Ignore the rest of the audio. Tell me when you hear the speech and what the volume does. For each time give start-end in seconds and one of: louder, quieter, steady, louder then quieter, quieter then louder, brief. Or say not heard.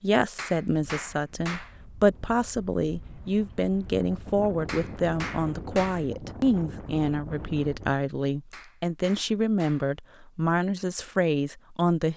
0.0-12.1 steady.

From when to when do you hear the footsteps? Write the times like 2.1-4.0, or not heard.
not heard.